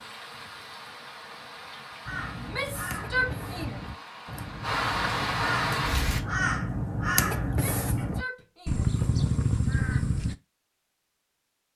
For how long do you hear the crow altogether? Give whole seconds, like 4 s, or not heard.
8 s.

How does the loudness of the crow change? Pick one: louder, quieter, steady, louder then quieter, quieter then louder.
louder.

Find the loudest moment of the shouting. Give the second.
3 s.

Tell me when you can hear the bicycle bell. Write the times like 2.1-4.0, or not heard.
not heard.